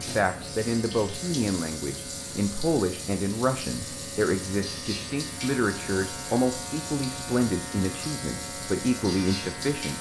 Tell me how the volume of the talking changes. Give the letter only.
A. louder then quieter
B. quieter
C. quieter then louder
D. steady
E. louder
D.